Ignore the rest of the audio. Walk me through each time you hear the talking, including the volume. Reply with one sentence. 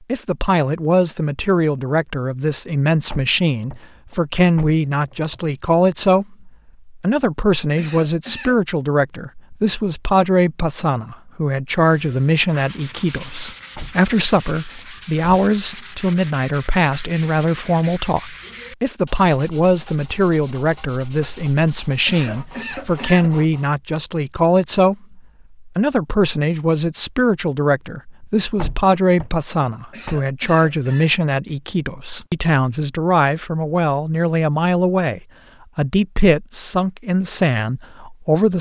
The talking can be heard from 0.1 to 38.5 s, at a steady volume.